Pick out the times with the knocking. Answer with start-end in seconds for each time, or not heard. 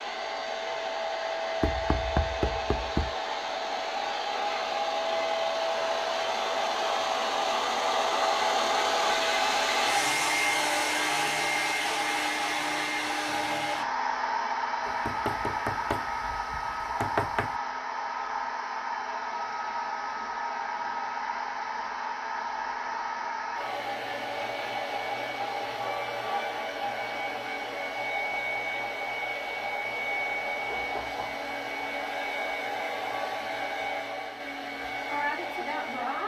1.6-3.1, 14.8-17.5, 30.7-31.4.